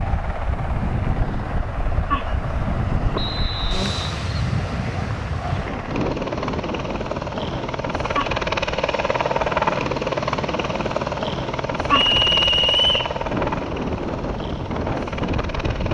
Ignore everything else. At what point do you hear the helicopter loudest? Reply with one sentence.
The volume of the helicopter peaks at 10 seconds.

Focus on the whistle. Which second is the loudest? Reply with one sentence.
The volume of the whistle peaks at 13 seconds.